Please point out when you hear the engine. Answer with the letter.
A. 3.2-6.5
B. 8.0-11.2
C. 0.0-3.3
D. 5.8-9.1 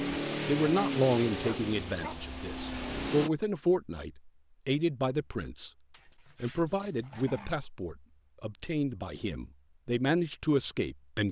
C.